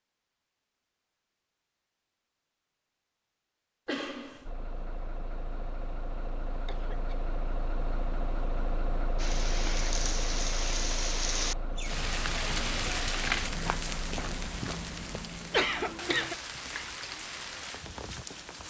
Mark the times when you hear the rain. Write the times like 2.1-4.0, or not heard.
9.2-18.6.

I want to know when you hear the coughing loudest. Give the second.
16 s.